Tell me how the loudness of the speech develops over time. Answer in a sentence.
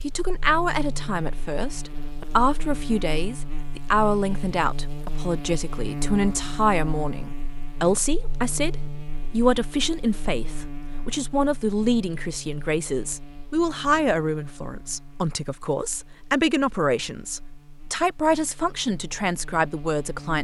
The volume of the speech stays about the same.